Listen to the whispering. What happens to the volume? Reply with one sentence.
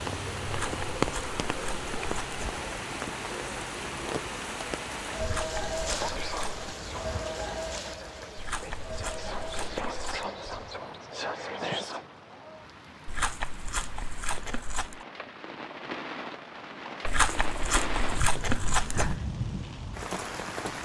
The volume of the whispering goes down, then up.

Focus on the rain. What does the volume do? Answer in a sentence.
The volume of the rain goes down, then up.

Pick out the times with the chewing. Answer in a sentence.
The chewing can be heard from 0.5 to 2.6 s, from 5.2 to 6.7 s, from 8.3 to 10.3 s, from 13.1 to 15.0 s and from 17.1 to 19.2 s.